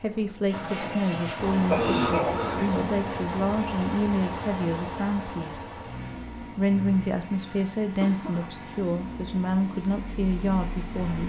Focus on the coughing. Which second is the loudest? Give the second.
2 s.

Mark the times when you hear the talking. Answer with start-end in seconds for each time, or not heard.
0.0-2.3, 2.9-5.7, 6.4-11.2.